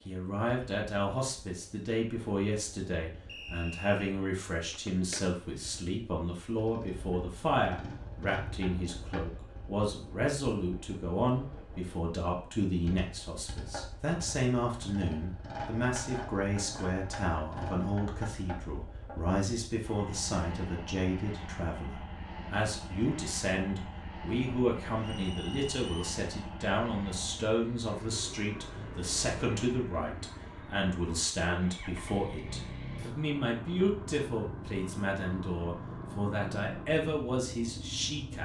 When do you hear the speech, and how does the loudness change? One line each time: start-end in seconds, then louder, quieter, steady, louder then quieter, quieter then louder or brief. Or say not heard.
0.1-38.4 steady.